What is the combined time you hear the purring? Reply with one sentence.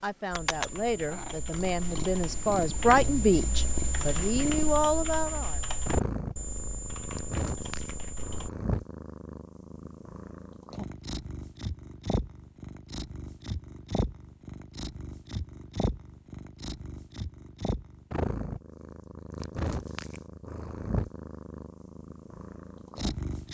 The purring can be heard for 23 seconds in total.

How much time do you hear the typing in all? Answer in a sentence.
You can hear the typing for 8 seconds altogether.